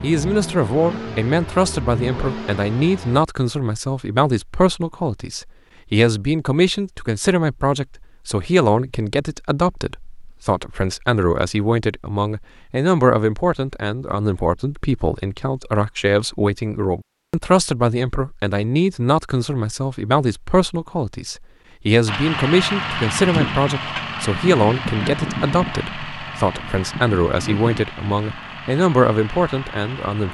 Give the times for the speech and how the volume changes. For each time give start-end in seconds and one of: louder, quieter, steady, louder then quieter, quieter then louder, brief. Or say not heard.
0.0-30.2 steady.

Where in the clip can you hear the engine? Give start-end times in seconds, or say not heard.
0.0-3.2, 22.1-30.2.